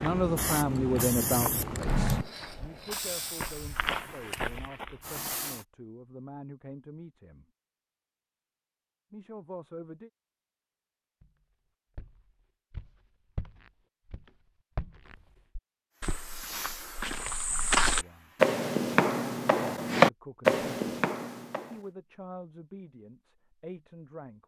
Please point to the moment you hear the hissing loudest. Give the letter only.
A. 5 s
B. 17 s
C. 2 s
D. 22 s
C.